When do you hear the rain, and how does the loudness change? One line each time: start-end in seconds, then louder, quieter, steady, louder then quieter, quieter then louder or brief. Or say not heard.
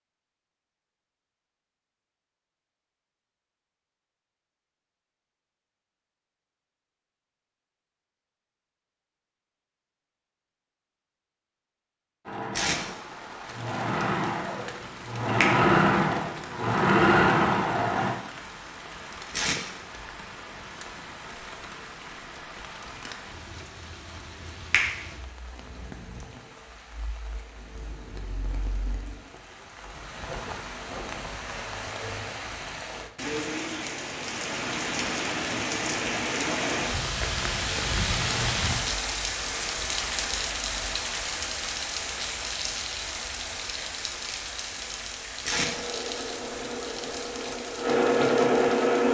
12.7-49.0 louder then quieter.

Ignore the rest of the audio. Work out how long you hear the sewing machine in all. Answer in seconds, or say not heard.
9 s.